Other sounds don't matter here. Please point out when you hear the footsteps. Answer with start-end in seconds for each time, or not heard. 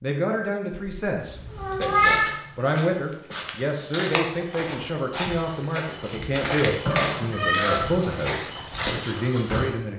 1.5-9.8.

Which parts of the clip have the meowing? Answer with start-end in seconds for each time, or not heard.
0.7-2.3, 6.7-7.9.